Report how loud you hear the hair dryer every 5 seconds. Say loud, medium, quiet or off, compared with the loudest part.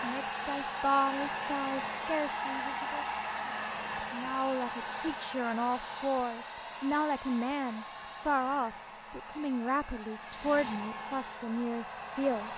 loud, medium, medium.